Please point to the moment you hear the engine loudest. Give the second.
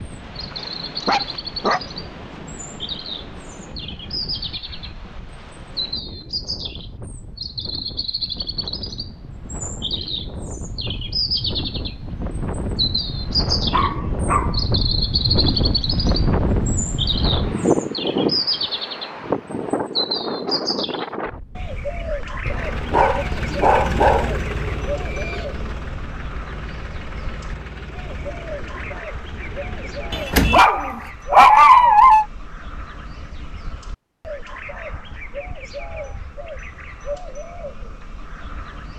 24 s.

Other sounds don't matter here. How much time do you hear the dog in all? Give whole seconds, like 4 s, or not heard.
6 s.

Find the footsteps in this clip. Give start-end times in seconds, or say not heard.
not heard.